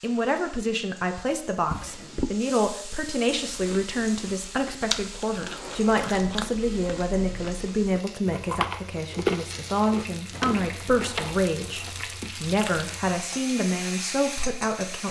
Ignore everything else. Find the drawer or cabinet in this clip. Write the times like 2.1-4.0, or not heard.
1.6-2.4, 5.3-6.6, 10.3-11.9.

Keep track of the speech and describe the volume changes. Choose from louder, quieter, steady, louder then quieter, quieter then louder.
steady.